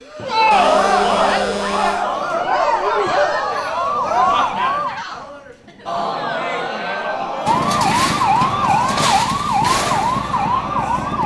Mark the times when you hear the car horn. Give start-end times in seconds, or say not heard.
0.5-2.0.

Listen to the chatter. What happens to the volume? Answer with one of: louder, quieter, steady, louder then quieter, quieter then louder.
quieter.